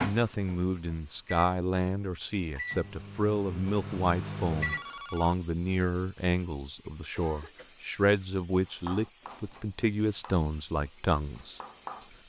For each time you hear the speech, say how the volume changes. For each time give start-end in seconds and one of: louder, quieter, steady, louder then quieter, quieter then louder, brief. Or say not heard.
0.0-11.6 steady.